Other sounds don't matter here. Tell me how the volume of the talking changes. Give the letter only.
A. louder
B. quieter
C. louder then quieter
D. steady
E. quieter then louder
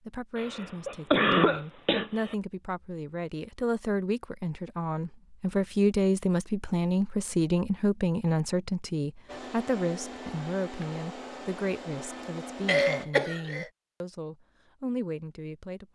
C.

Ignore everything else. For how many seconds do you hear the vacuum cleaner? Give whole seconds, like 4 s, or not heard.
4 s.